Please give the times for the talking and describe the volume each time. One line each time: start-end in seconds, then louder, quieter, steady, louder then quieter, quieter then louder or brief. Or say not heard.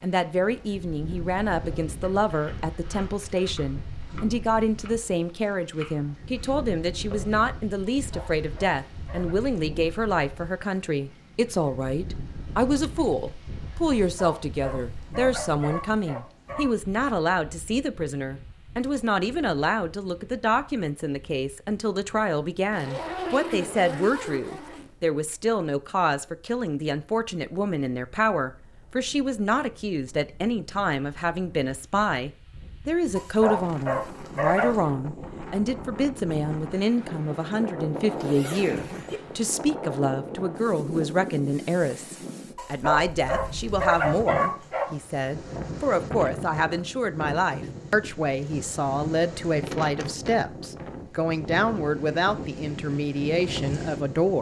0.0-54.3 steady.